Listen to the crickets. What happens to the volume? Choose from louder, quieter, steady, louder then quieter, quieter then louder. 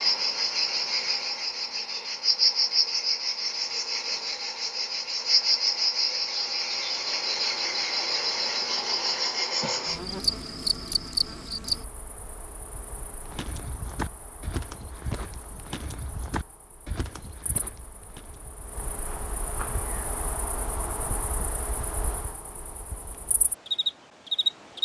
quieter then louder.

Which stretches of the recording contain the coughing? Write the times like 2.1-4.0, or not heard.
not heard.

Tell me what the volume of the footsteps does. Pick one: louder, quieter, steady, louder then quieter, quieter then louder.
quieter.